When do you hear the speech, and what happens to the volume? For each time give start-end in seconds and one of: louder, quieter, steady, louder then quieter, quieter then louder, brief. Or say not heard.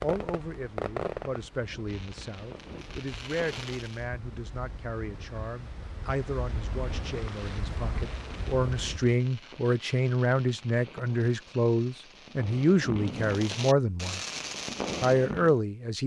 0.0-14.2 louder
15.0-16.0 brief.